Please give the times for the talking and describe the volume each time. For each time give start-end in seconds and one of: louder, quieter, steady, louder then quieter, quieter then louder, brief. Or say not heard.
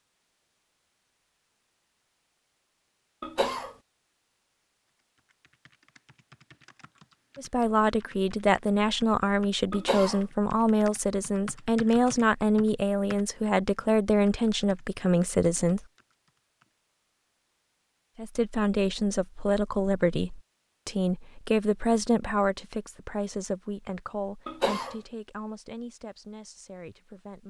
7.3-15.8 steady
18.1-27.4 quieter.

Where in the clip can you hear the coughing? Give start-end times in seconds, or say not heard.
3.2-3.8, 9.7-10.2, 24.4-24.9.